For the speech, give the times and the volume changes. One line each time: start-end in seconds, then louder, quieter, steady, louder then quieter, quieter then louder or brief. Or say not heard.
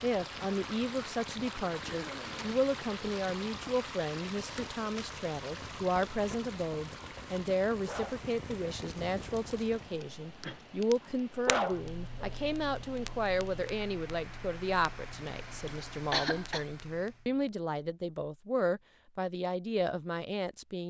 0.0-20.8 steady.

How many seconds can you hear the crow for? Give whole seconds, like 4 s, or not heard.
not heard.